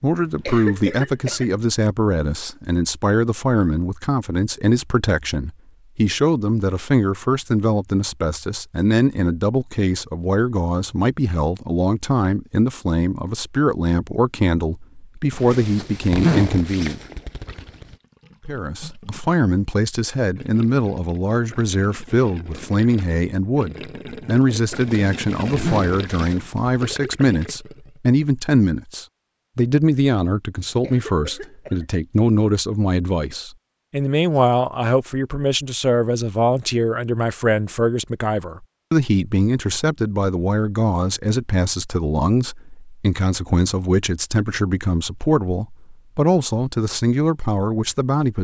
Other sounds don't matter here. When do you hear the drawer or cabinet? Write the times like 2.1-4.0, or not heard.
not heard.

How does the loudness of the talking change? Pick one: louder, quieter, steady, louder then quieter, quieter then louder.
steady.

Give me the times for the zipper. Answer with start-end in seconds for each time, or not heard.
15.3-17.9, 24.7-26.8.